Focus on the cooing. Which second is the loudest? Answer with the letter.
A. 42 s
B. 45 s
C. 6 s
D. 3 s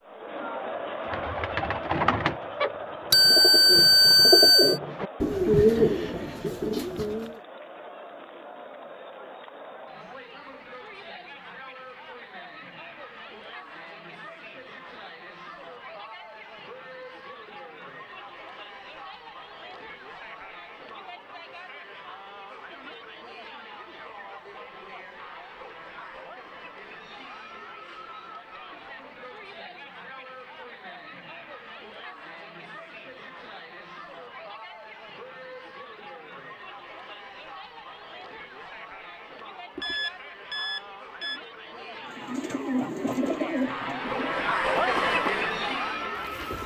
C.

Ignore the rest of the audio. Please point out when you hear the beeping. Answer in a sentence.
You can hear the beeping from 3.1 to 4.8 s and from 39.8 to 41.4 s.